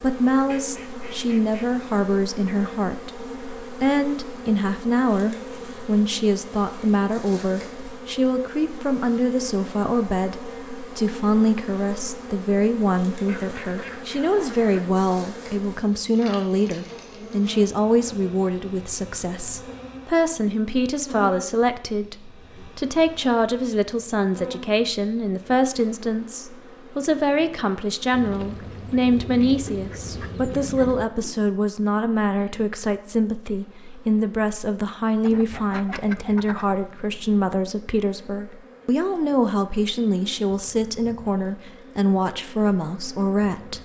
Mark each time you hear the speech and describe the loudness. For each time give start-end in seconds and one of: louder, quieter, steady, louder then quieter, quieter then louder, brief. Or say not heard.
0.0-43.8 steady.